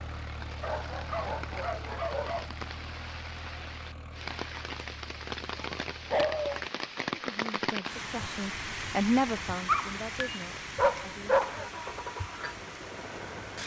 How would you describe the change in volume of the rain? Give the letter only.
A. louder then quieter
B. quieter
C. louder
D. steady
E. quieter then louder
A.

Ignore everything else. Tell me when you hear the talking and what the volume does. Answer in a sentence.
You can hear the talking from 7.2 to 11.8 s, getting louder then quieter.